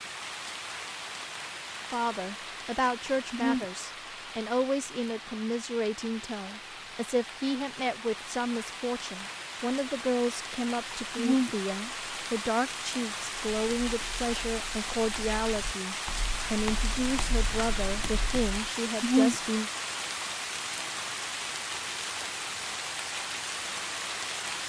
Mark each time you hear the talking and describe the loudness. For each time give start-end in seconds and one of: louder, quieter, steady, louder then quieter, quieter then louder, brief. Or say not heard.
1.9-19.7 steady.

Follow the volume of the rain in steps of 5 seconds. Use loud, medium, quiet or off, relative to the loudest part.
medium, medium, loud, loud, loud.